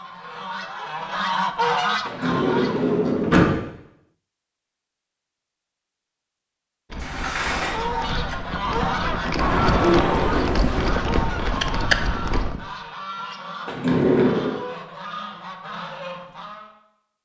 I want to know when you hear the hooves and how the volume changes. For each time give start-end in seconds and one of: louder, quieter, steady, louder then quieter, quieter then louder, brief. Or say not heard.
6.9-12.6 louder.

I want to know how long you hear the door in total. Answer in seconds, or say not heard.
3 s.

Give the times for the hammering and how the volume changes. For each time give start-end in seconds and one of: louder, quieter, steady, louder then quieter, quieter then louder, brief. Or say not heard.
not heard.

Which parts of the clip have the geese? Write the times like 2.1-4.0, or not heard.
0.0-3.1, 7.6-16.7.